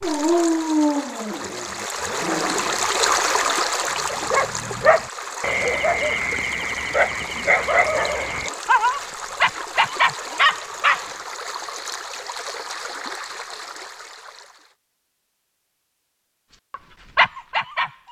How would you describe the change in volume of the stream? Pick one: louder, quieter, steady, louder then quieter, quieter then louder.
quieter.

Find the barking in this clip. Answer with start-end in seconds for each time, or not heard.
0.0-11.1, 16.5-18.0.